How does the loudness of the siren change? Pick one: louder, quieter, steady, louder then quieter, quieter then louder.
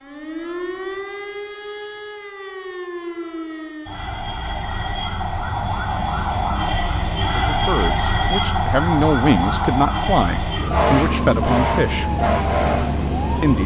louder.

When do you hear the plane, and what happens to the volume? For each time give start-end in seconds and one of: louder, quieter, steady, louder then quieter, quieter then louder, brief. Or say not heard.
not heard.